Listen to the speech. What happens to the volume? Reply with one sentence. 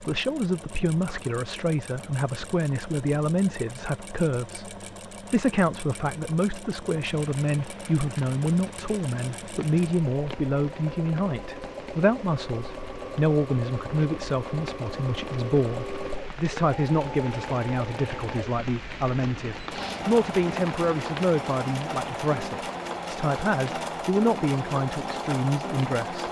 The loudness of the speech stays about the same.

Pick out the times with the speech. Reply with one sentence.
You can hear the speech from 0.0 to 26.2 s.